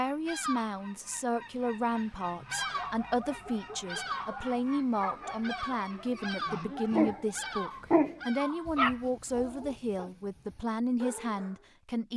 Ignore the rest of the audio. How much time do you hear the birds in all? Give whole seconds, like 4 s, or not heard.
9 s.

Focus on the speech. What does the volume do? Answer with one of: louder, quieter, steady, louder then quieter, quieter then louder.
steady.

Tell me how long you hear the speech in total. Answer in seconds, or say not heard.
12 s.